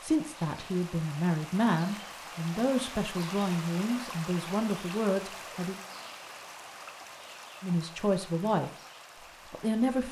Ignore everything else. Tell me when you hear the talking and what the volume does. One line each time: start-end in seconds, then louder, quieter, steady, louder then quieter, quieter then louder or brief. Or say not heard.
0.0-5.8 steady
7.6-8.7 brief
9.5-10.0 brief.